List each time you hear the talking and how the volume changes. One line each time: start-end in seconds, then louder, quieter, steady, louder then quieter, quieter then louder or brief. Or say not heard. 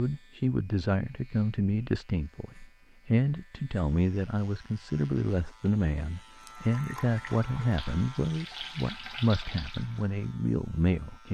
0.0-11.3 steady.